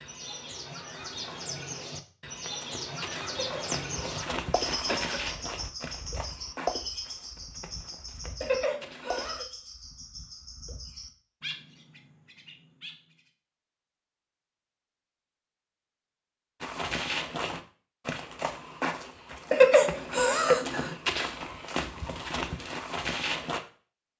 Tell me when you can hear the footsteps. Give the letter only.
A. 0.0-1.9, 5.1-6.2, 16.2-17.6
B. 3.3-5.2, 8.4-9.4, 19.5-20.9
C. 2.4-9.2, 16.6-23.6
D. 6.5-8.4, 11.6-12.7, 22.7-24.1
C.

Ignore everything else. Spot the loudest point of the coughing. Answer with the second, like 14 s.
20 s.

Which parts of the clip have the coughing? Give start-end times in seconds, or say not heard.
3.3-5.2, 8.4-9.4, 19.5-20.9.